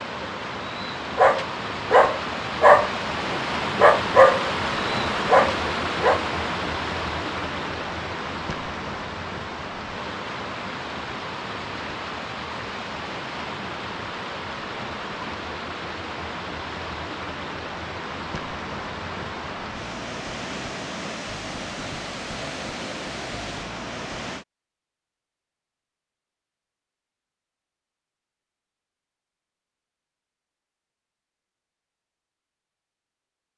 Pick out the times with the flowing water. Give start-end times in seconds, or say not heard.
0.0-24.4.